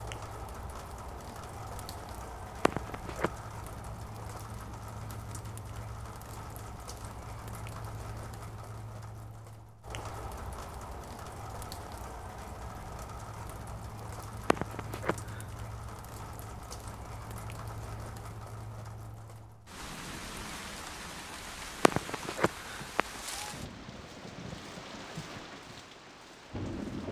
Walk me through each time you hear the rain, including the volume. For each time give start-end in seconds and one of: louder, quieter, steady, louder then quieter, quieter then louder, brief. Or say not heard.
0.0-27.0 steady.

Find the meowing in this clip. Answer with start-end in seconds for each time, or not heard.
2.6-3.3, 14.4-15.4, 21.8-23.5.